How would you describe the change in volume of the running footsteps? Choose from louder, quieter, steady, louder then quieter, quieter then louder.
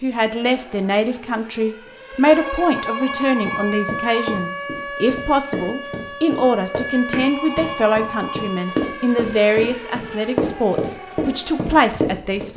louder.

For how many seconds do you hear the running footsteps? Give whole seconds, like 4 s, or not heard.
9 s.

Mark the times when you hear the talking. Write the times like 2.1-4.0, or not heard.
0.0-12.5.